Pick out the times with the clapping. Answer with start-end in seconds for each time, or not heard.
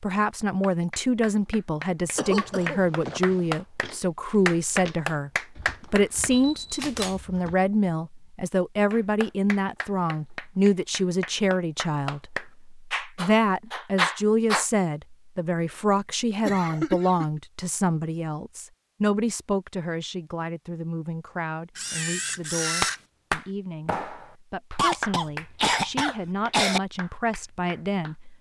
0.6-6.3, 8.9-14.7, 22.8-28.1.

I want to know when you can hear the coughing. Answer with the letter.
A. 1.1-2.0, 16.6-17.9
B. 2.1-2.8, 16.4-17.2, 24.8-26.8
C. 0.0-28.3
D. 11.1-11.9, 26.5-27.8
B.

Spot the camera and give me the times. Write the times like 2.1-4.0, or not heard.
6.3-7.2, 21.8-23.0.